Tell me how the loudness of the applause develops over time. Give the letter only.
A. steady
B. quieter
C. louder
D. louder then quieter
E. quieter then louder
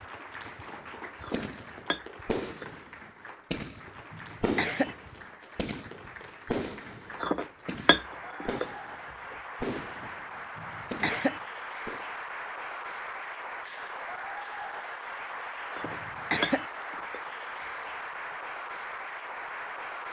C.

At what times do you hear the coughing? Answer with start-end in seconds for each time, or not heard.
4.1-5.0, 10.6-11.4, 15.8-16.6.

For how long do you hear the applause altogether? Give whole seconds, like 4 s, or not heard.
20 s.